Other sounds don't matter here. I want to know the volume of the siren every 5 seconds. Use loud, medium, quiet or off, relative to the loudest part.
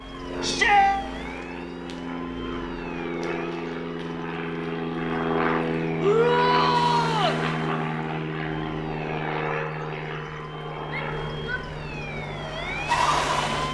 quiet, medium, loud.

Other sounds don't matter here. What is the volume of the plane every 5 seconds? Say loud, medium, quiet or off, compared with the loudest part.
medium, loud, medium.